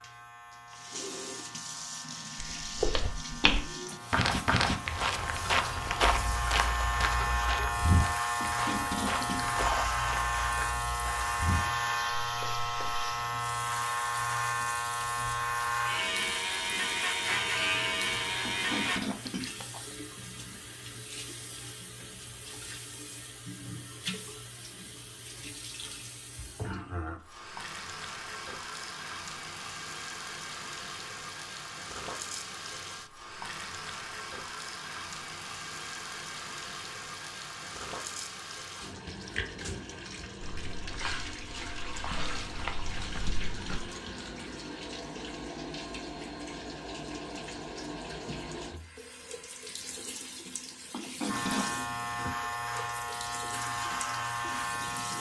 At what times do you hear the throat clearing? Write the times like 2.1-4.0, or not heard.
8.4-9.9, 18.4-19.8, 50.9-51.6.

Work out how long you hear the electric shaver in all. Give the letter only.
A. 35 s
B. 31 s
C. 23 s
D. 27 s
C.